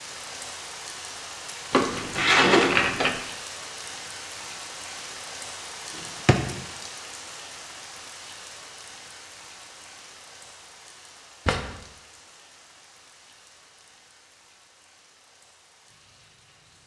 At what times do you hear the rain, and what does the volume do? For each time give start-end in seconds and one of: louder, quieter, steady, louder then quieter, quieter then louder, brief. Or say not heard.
0.0-16.8 quieter.